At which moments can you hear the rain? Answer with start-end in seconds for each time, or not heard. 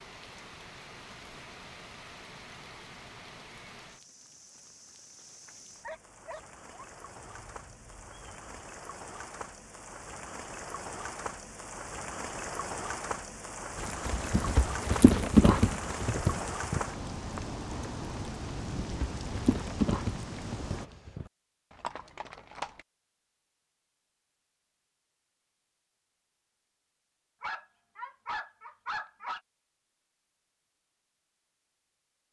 0.0-20.9.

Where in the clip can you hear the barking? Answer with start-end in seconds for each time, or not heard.
5.8-8.4, 27.4-29.4.